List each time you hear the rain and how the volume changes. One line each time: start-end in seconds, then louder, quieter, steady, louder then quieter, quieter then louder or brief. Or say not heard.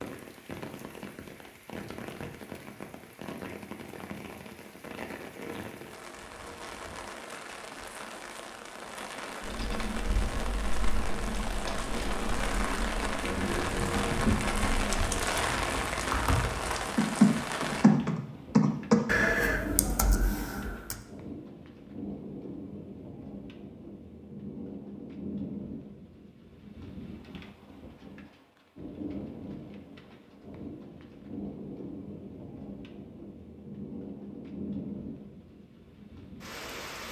0.0-37.0 louder then quieter.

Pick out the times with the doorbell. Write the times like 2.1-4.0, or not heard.
not heard.